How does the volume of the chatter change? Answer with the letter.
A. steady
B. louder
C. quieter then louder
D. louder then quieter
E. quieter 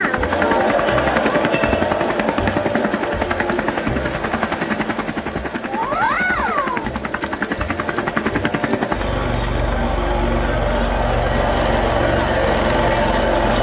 C.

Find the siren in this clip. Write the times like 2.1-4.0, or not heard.
not heard.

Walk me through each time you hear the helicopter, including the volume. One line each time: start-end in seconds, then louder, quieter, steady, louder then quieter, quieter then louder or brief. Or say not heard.
0.0-13.5 steady.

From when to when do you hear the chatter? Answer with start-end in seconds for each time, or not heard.
0.0-13.5.